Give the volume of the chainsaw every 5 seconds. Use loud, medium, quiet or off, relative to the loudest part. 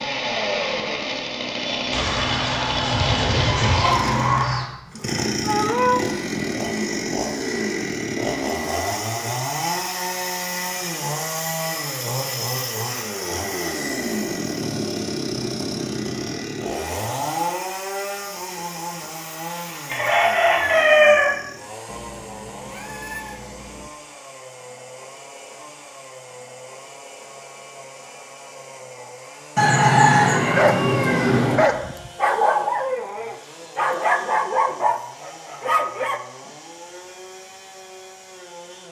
loud, loud, loud, loud, quiet, quiet, quiet, quiet.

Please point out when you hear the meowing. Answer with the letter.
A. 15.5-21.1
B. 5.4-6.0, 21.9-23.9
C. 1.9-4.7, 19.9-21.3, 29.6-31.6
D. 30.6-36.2
B.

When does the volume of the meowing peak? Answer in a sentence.
The volume of the meowing peaks at 6 seconds.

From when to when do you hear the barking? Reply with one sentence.
The barking can be heard from 30.6 to 36.2 s.